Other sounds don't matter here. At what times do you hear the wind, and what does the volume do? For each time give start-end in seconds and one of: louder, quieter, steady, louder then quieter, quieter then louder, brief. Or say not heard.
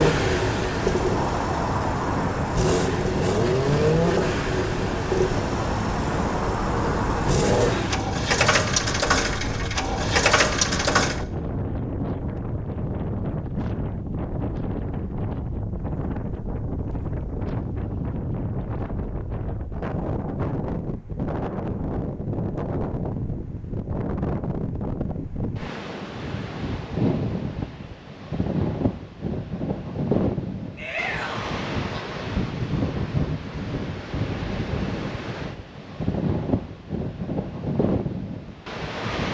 0.0-39.2 steady.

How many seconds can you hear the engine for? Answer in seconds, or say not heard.
11 s.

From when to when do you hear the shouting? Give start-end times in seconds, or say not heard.
30.8-31.6.